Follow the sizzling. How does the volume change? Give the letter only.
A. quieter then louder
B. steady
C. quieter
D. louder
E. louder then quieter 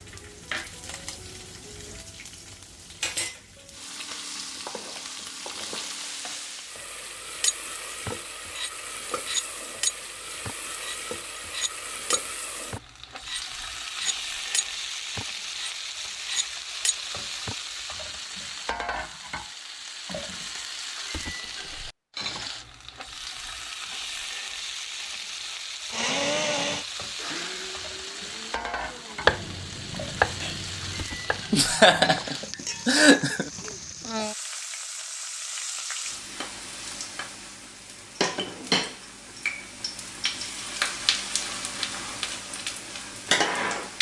D.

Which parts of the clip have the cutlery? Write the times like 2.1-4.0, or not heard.
7.4-17.6.